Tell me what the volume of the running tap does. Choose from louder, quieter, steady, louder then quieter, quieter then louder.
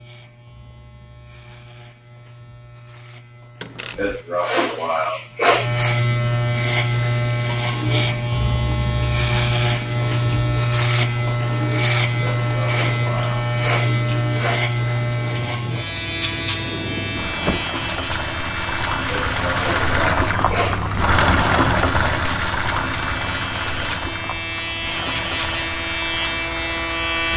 louder then quieter.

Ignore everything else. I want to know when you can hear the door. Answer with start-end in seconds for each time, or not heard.
3.6-4.2, 16.6-17.7.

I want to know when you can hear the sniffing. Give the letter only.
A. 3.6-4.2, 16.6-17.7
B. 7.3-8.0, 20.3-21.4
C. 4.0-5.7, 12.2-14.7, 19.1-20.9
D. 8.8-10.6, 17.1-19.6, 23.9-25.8
C.